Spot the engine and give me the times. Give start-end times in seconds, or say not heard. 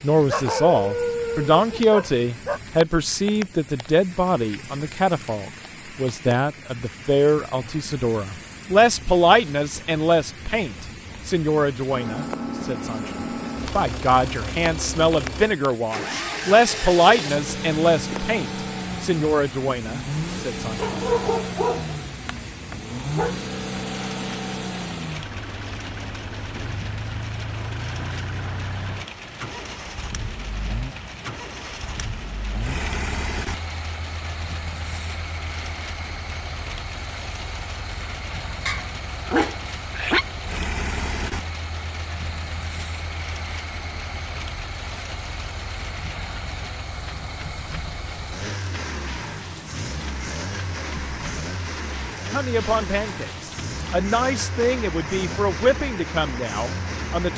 11.9-57.3.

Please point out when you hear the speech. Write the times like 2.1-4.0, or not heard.
0.0-20.9, 52.3-57.3.